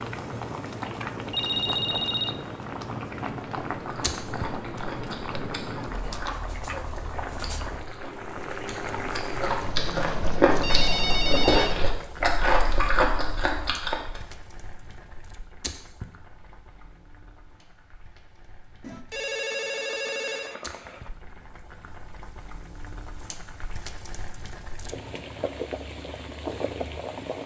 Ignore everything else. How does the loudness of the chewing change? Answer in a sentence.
The loudness of the chewing goes up.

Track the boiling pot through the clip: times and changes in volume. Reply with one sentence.
The boiling pot can be heard from 0.0 to 27.4 s, getting quieter then louder.